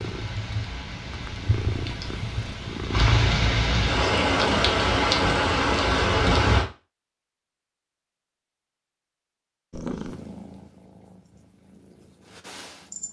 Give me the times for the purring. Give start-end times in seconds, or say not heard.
0.0-3.4, 9.7-13.0.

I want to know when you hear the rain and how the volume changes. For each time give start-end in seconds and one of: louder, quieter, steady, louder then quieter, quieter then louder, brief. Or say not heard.
0.0-6.7 louder.